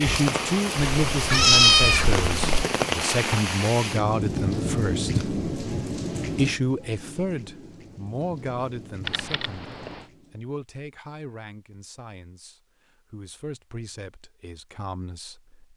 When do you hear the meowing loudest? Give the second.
2 s.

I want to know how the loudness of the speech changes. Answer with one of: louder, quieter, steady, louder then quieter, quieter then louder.
quieter.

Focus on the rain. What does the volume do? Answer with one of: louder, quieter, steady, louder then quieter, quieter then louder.
quieter.